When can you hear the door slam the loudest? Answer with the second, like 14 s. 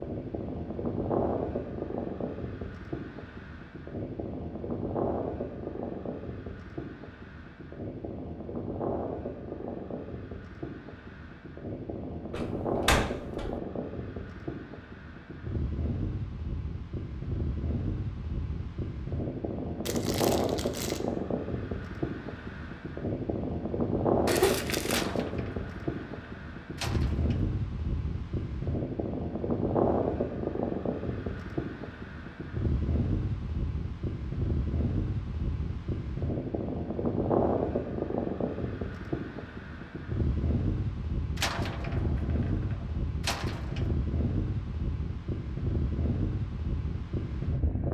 13 s.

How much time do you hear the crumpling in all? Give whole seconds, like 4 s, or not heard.
2 s.